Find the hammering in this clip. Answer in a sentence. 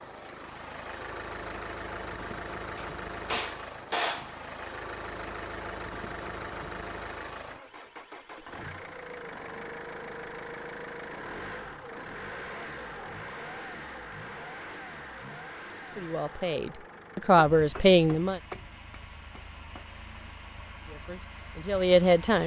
The hammering can be heard from 2.8 to 4.3 s and from 17.2 to 19.9 s.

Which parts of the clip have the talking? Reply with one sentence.
The talking can be heard from 15.9 to 18.4 s and from 20.9 to 22.4 s.